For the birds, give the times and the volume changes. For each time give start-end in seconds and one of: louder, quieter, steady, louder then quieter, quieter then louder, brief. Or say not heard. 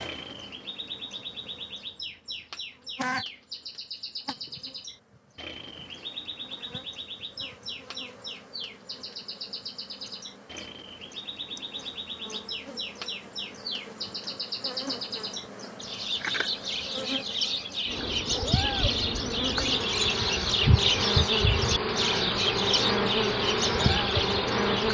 0.0-24.8 louder.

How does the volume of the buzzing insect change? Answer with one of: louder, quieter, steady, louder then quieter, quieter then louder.
quieter then louder.